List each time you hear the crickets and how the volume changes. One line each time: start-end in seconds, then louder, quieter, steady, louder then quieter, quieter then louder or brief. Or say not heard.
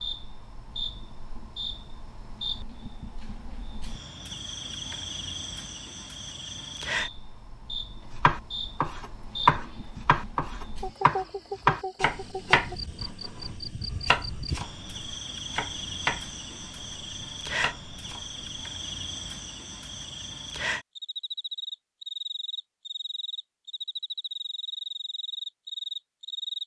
0.0-26.6 steady.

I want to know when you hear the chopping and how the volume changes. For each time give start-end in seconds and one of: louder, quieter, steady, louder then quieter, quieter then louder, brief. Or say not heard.
8.2-18.4 quieter.